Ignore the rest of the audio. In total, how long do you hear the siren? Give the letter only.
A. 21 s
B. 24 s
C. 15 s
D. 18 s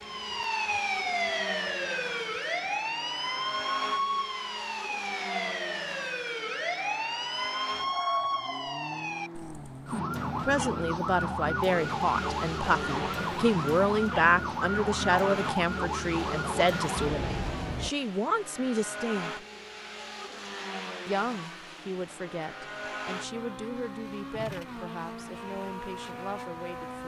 D.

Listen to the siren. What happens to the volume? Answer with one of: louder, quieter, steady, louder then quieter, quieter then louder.
steady.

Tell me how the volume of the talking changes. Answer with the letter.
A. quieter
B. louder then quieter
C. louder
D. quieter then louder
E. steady
A.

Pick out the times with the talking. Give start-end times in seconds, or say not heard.
10.4-19.4, 21.1-27.0.